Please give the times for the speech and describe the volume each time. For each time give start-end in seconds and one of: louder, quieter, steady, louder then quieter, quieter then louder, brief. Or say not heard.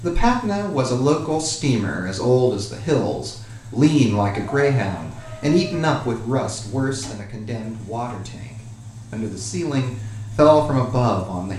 0.0-11.5 quieter then louder.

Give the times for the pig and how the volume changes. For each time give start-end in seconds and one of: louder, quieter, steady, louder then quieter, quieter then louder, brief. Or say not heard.
not heard.